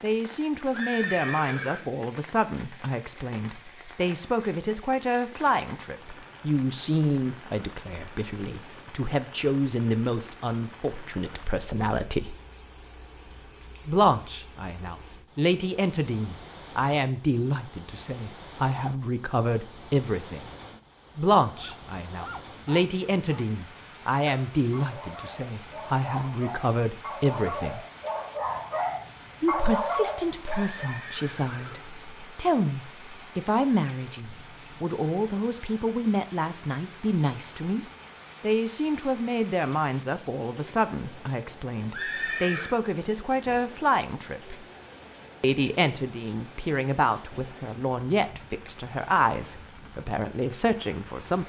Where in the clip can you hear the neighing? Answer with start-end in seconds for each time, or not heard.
0.7-1.8, 30.5-32.0, 41.9-42.8.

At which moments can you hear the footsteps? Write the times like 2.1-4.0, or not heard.
not heard.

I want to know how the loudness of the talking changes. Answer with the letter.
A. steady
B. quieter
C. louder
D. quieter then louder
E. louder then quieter
A.